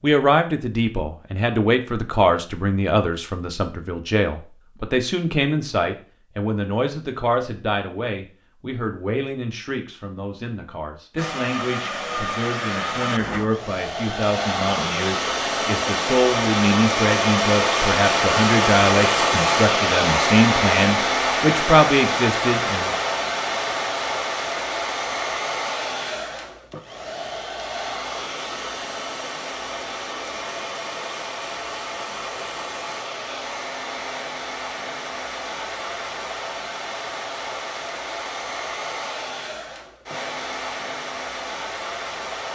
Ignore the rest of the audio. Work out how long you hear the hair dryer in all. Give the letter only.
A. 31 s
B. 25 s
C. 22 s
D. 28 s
A.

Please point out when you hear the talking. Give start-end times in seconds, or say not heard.
0.0-22.9.